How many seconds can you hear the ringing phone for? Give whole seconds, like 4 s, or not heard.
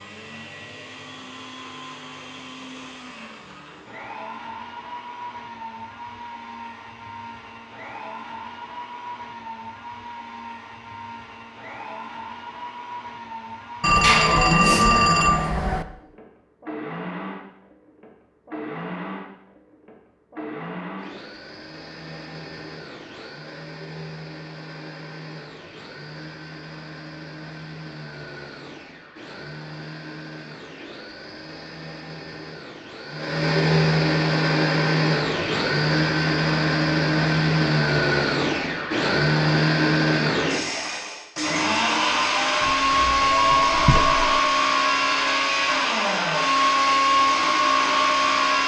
4 s.